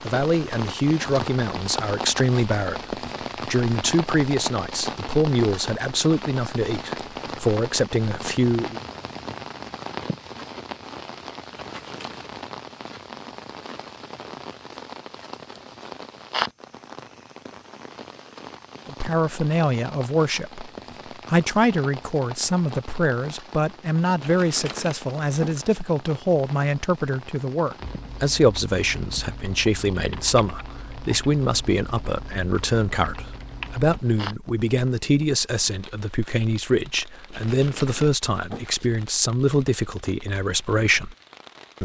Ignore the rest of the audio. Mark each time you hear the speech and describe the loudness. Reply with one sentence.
You can hear the speech from 0.0 to 8.8 s, at a steady volume; briefly from 18.9 to 20.7 s; and from 21.3 to 41.1 s, at a steady volume.